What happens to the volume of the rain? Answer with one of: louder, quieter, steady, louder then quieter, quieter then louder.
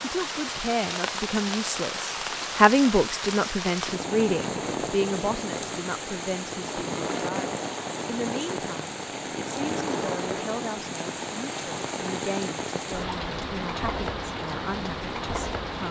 steady.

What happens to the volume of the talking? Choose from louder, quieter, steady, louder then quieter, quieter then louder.
quieter.